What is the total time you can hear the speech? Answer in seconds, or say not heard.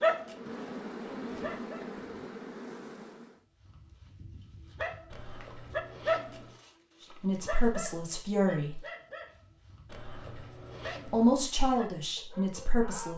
4 s.